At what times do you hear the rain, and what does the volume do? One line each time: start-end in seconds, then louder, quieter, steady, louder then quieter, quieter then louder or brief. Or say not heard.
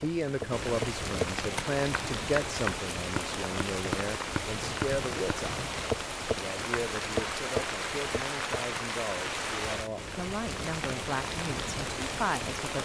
0.0-12.8 steady.